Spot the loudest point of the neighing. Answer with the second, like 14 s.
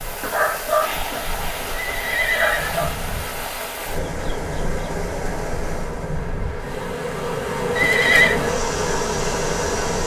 8 s.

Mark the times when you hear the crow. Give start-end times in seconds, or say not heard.
not heard.